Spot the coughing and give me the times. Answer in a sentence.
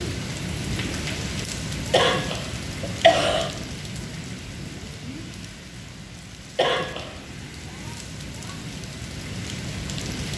The coughing can be heard from 1.9 to 3.5 s and from 6.5 to 7.2 s.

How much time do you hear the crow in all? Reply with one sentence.
The crow can't be heard in this clip.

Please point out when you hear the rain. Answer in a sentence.
You can hear the rain from 0.0 to 10.3 s.